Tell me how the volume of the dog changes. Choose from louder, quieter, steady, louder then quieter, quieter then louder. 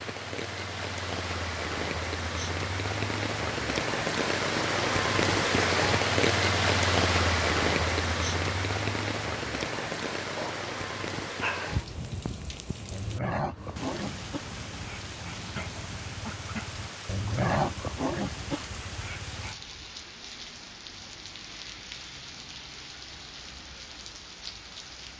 quieter then louder.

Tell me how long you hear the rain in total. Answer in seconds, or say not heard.
25 s.